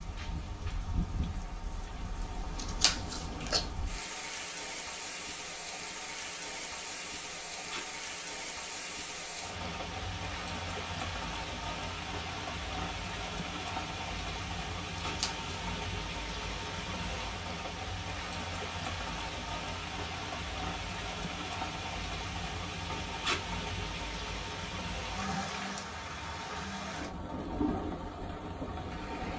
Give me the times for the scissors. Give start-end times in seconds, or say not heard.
2.5-3.7, 15.0-15.5.